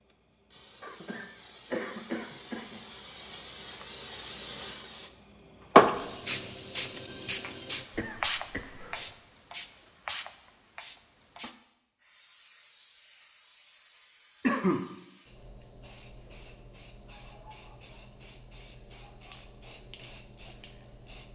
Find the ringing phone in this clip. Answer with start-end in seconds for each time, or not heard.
not heard.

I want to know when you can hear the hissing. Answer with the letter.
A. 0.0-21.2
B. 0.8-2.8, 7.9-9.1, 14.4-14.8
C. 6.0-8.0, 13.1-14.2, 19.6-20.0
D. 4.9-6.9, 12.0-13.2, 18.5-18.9
A.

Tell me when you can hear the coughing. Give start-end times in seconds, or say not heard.
0.8-2.8, 7.9-9.1, 14.4-14.8.